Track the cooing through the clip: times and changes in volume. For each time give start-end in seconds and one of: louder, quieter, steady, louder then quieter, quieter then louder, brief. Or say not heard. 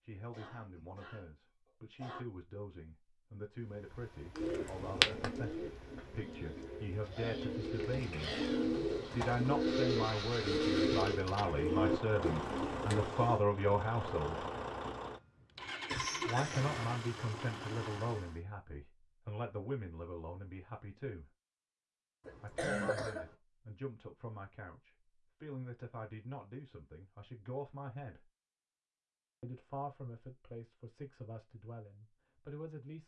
4.3-13.4 quieter then louder.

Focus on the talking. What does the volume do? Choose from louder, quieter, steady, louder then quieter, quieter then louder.
louder then quieter.